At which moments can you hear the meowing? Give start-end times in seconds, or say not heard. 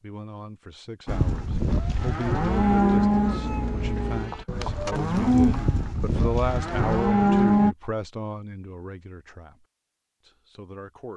2.6-4.3.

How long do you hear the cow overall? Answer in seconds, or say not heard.
7 s.